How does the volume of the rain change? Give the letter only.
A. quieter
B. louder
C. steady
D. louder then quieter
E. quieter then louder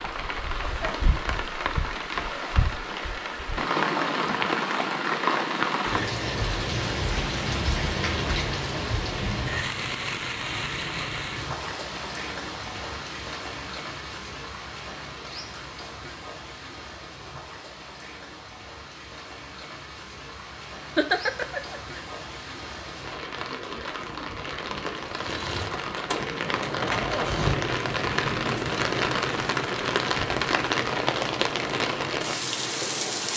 E.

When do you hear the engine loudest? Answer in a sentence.
The loudest moment of the engine is at 27 seconds.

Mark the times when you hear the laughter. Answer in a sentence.
The laughter can be heard from 20.9 to 22.0 s.